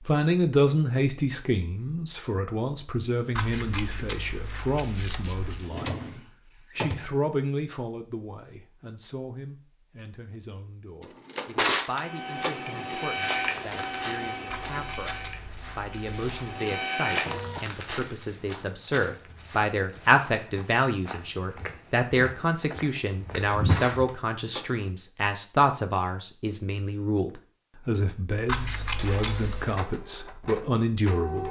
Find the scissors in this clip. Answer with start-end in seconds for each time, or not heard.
3.4-5.7, 14.5-16.4, 28.4-29.8.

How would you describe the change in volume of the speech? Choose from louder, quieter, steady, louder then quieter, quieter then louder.
quieter then louder.